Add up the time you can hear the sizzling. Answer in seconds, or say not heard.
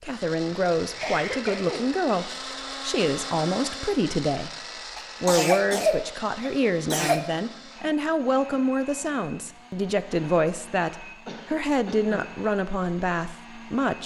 not heard.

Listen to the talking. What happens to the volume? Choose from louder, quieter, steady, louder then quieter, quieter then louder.
steady.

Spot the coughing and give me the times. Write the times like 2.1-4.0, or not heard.
0.8-1.9, 5.0-7.2, 11.2-12.2.